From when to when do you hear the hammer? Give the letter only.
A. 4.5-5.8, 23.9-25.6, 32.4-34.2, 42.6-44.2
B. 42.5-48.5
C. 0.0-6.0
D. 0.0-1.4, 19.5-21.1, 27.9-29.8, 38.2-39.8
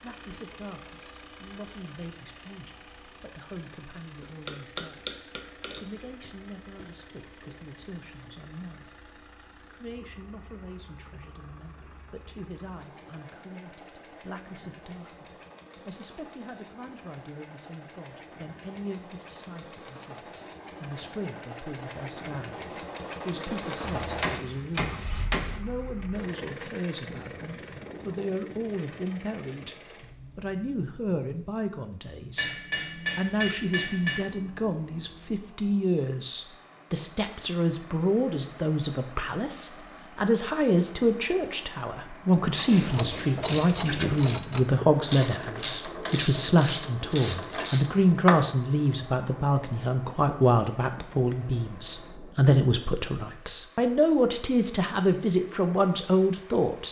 A.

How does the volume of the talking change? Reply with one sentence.
The loudness of the talking goes up.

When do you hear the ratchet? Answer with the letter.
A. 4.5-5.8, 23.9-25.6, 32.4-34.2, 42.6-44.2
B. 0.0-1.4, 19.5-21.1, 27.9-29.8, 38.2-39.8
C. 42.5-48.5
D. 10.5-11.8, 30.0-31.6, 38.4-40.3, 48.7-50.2
C.